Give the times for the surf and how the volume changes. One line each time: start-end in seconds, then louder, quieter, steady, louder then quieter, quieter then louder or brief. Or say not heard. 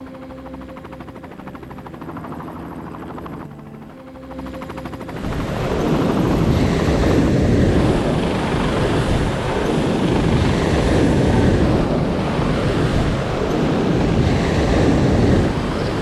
5.0-15.9 steady.